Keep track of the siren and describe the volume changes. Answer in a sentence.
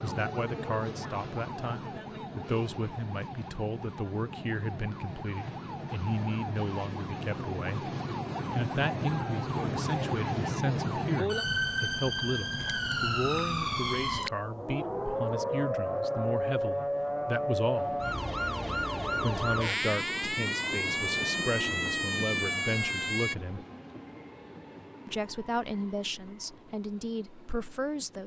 The volume of the siren goes up.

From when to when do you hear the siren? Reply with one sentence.
You can hear the siren from 0.0 to 23.4 s.